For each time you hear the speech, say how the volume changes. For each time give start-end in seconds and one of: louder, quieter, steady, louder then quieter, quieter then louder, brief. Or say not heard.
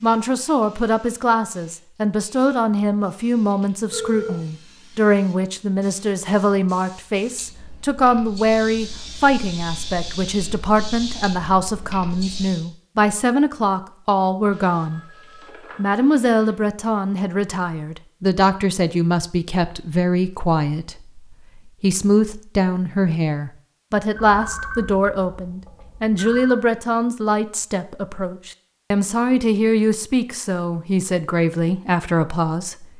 0.0-15.0 steady
15.8-32.9 steady.